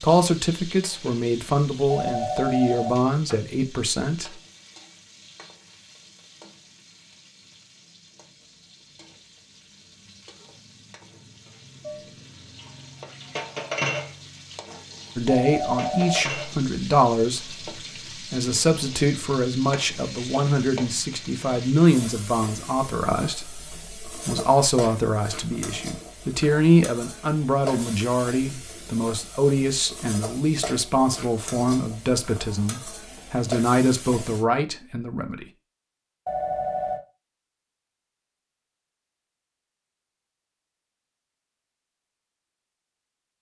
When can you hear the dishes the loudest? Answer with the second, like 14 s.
14 s.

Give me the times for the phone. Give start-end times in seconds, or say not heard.
1.9-3.4, 15.2-16.2, 36.2-37.0.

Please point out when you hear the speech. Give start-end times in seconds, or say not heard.
0.0-4.4, 15.2-35.5.